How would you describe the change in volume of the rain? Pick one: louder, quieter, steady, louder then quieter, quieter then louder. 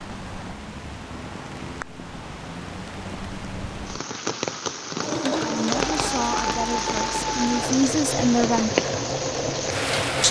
louder.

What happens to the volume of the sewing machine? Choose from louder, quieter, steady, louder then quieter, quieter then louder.
steady.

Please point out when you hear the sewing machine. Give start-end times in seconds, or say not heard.
5.0-10.2.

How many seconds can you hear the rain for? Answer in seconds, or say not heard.
10 s.